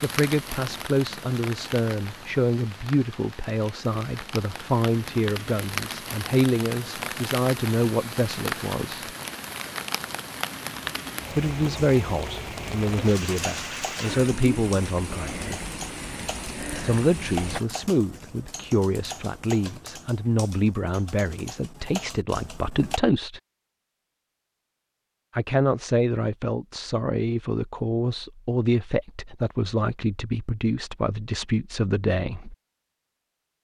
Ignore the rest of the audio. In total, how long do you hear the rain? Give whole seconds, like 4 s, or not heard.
18 s.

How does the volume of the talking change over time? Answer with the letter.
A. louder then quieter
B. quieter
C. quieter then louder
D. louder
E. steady
E.